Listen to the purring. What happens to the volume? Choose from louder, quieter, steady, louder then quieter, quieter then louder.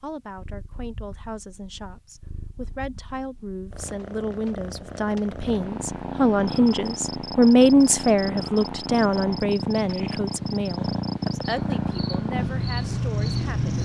louder.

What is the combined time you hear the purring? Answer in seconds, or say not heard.
14 s.